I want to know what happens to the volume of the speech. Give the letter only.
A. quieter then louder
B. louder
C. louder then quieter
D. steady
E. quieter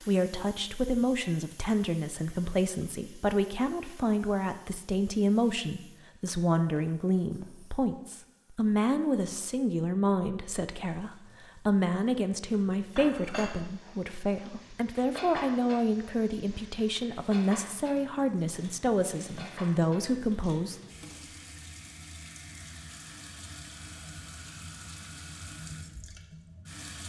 D.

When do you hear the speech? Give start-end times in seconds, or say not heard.
0.0-20.8.